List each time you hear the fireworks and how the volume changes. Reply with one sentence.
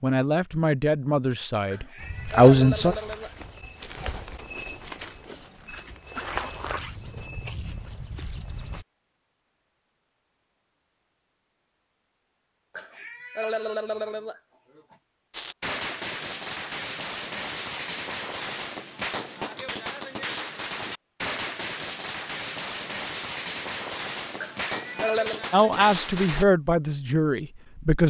You can hear the fireworks from 15.3 to 26.4 s, at a steady volume.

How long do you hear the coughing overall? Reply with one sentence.
You can hear the coughing for 5 seconds altogether.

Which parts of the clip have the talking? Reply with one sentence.
You can hear the talking from 0.0 to 3.0 s and from 25.5 to 28.0 s.